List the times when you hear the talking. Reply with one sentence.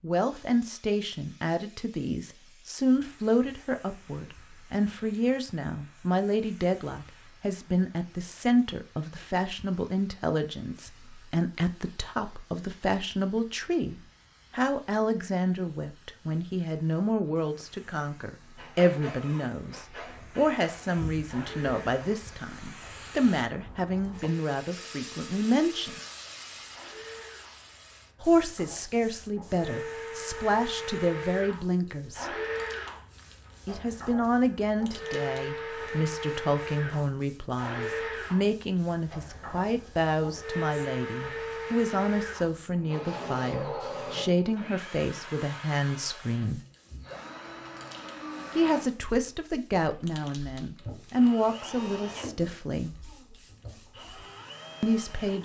You can hear the talking from 0.0 to 26.0 s, from 28.2 to 32.4 s, from 33.6 to 46.6 s, from 48.5 to 53.0 s and from 54.8 to 55.4 s.